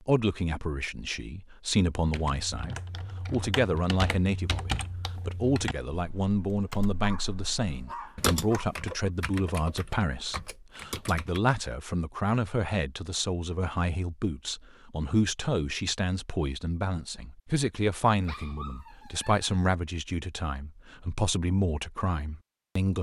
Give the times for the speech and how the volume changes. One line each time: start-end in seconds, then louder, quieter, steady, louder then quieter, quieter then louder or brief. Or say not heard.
0.1-22.9 steady.